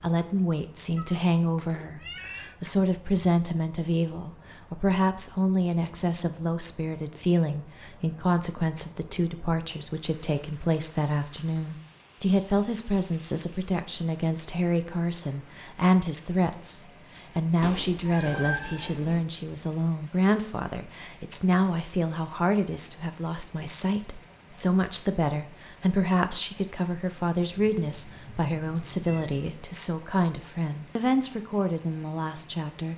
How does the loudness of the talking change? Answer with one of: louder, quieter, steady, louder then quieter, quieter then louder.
steady.